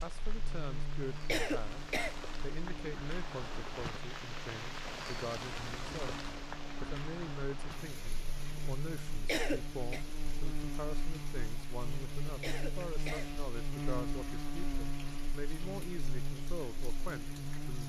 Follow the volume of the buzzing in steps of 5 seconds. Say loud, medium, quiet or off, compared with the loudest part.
medium, medium, loud, loud.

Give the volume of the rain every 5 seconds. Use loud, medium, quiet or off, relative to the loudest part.
loud, loud, medium, medium.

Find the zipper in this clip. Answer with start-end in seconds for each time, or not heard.
not heard.